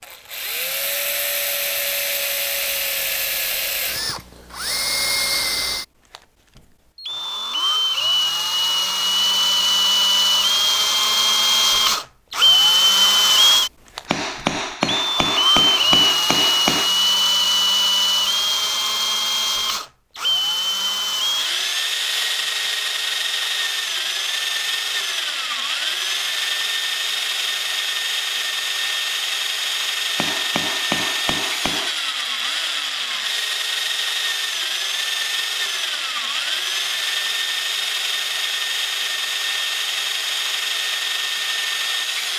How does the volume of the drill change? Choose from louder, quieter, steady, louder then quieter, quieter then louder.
louder then quieter.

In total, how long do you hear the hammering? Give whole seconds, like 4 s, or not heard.
5 s.